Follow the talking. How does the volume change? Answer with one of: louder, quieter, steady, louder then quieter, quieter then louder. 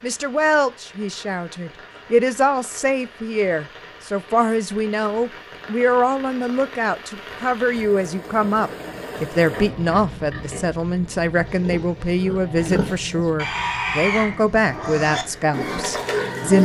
steady.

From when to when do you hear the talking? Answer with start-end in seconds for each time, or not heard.
0.0-16.6.